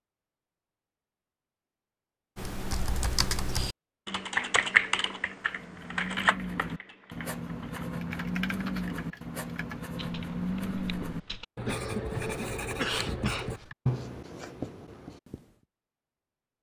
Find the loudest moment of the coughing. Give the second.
13 s.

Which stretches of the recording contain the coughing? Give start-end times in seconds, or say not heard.
11.7-13.7.